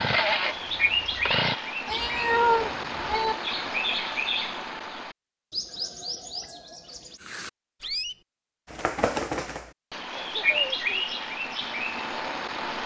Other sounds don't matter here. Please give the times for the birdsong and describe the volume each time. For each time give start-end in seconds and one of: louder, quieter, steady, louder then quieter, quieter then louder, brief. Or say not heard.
0.0-12.8 quieter then louder.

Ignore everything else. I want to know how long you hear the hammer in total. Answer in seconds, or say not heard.
not heard.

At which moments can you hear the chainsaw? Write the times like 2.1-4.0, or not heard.
0.0-1.6.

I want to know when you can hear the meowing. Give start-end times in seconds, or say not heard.
1.9-3.4.